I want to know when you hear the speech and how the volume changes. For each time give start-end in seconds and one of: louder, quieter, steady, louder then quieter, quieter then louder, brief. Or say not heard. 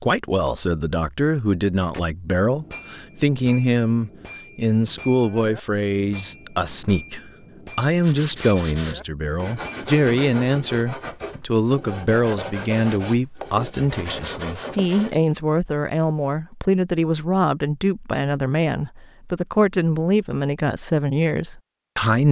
0.0-22.2 steady.